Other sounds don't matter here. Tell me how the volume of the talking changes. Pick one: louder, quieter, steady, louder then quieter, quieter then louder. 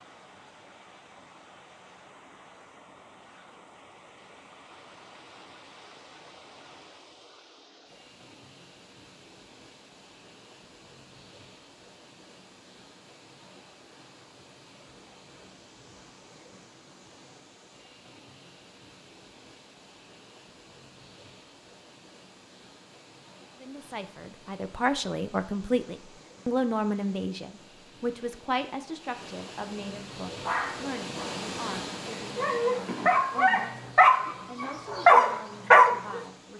quieter.